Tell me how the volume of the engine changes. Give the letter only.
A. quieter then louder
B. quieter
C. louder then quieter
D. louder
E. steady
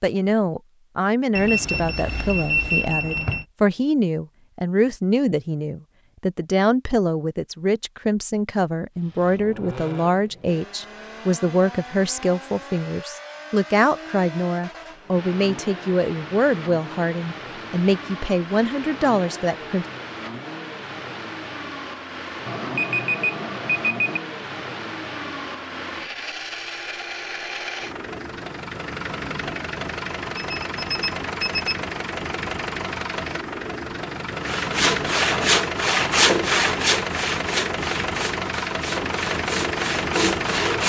D.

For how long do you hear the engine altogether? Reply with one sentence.
The engine can be heard for 32 seconds in total.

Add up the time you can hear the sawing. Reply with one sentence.
The sawing can be heard for 6 seconds in total.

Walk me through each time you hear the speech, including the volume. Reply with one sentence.
The speech can be heard from 0.0 to 19.9 s, at a steady volume.